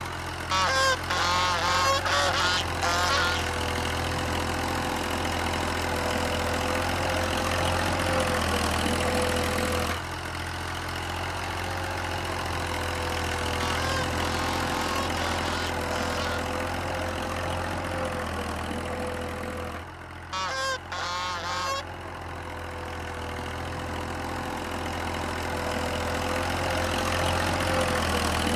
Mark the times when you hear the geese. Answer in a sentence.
The geese can be heard from 0.5 to 3.5 s, from 13.6 to 16.4 s and from 20.3 to 21.9 s.